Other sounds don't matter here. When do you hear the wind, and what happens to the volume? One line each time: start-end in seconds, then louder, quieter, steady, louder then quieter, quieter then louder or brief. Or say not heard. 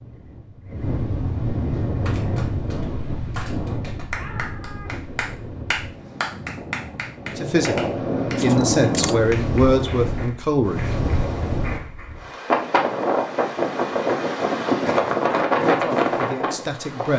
0.0-17.1 quieter then louder.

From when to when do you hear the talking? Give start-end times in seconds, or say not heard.
7.3-10.8, 15.6-17.1.